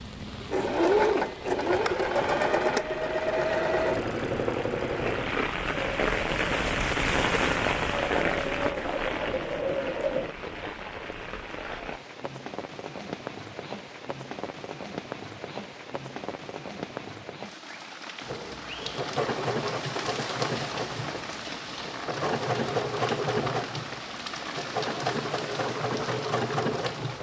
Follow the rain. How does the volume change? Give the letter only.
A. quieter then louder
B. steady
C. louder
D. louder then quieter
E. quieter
D.